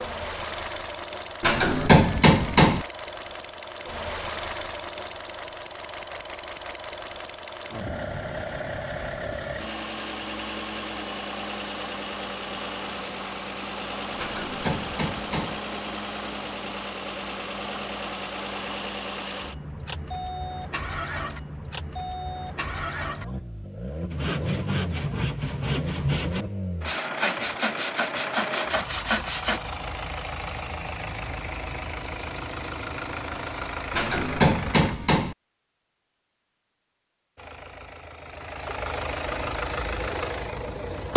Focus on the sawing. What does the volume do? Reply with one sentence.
The volume of the sawing stays about the same.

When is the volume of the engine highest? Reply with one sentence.
The volume of the engine peaks at 41 seconds.